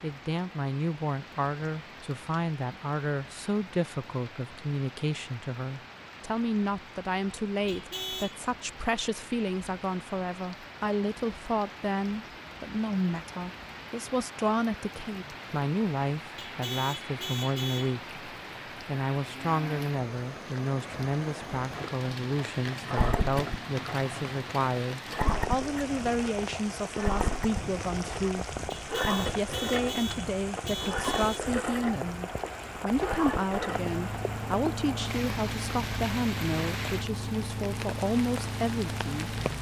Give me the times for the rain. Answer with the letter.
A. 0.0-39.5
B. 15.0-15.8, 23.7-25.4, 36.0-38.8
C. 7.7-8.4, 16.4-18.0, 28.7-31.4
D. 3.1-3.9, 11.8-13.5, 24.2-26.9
A.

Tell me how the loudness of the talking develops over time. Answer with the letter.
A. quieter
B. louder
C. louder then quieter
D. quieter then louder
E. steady
E.